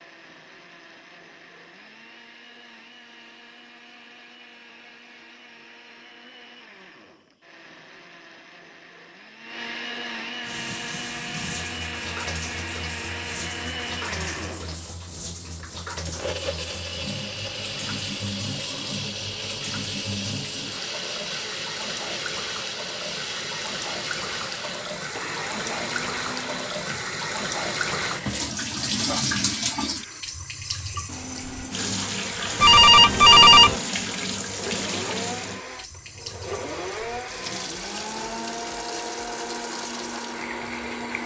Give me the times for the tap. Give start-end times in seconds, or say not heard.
10.4-41.2.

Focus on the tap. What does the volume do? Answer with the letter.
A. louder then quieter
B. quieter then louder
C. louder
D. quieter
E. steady
A.